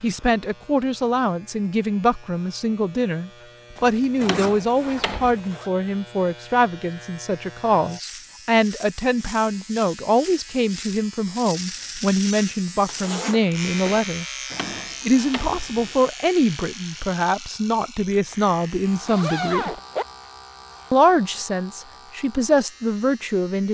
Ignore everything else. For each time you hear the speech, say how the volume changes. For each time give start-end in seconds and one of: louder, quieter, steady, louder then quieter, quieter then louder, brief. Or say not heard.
0.0-14.2 steady
15.1-19.7 steady
20.9-23.6 brief.